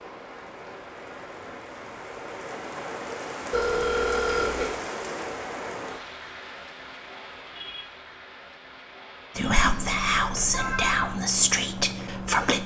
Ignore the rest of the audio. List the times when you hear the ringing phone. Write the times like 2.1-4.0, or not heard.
3.5-4.7, 9.4-11.1.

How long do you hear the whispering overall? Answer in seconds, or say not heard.
3 s.